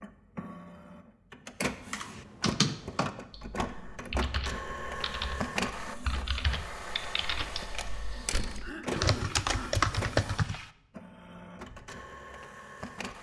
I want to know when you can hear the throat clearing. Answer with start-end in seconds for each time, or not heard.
8.6-9.8.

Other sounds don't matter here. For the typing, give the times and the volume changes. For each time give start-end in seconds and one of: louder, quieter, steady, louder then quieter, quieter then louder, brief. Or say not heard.
1.9-10.7 quieter then louder.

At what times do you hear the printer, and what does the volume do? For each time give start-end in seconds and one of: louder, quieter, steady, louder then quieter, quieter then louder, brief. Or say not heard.
0.0-13.1 quieter.